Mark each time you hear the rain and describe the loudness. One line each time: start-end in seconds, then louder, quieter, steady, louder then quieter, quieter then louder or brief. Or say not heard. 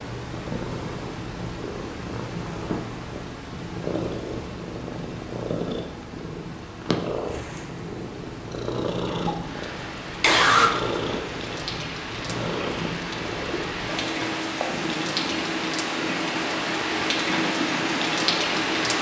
7.2-18.9 louder.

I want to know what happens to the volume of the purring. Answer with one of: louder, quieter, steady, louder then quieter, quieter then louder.
steady.